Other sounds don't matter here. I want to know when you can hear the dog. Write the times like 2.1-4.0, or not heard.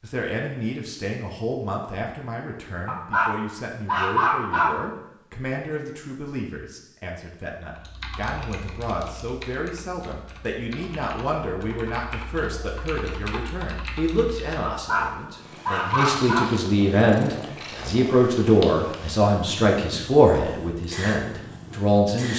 2.9-4.8, 14.7-16.6.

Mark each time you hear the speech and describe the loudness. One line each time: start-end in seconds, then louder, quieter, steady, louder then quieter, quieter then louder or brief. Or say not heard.
0.0-22.3 louder.